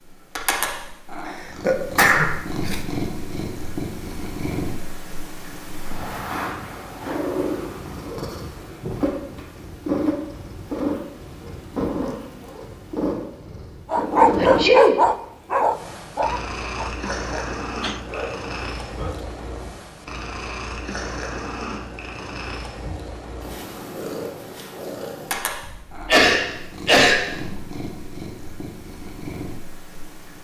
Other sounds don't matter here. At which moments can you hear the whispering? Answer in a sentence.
The whispering can't be heard in this clip.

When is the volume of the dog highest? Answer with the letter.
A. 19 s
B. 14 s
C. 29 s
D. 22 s
B.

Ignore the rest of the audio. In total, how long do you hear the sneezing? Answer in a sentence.
You can hear the sneezing for 3 seconds altogether.